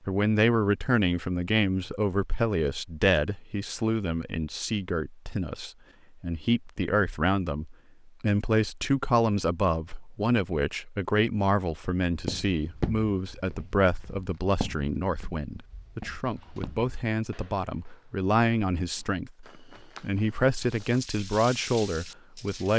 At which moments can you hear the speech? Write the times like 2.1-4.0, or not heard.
0.1-22.7.